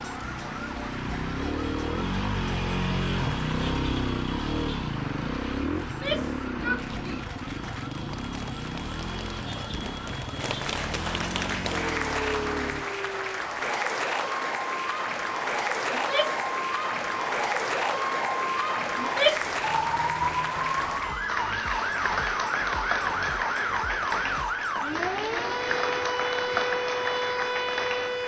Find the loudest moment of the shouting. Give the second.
19 s.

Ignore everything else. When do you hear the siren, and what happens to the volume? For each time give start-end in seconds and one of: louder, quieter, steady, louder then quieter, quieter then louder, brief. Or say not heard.
0.0-28.2 louder.